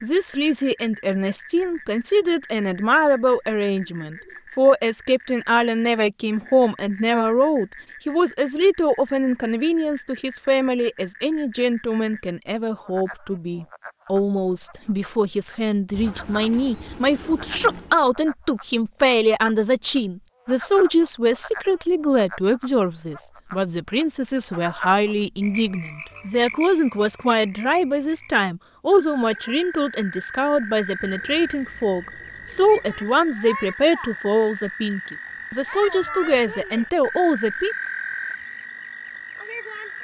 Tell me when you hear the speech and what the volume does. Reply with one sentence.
You can hear the speech from 0.0 to 37.8 s, at a steady volume.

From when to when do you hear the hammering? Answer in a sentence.
You can't hear the hammering here.